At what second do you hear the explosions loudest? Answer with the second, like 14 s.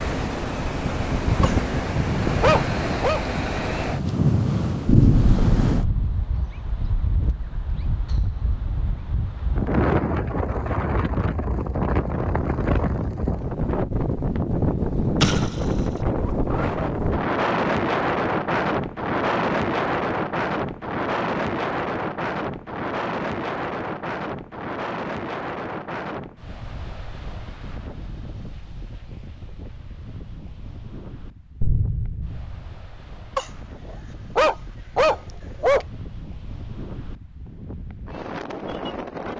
5 s.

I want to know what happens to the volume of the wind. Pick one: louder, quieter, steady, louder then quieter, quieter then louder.
quieter.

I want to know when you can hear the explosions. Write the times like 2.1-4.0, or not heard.
4.8-6.1, 15.2-15.9, 31.6-32.6.